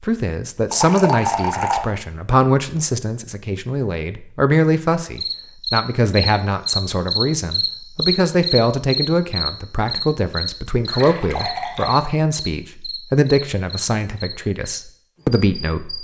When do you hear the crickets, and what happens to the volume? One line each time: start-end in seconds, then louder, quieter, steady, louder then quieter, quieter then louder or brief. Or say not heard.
5.2-15.9 quieter.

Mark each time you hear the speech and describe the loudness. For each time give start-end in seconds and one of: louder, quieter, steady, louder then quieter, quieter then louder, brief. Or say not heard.
0.0-15.9 steady.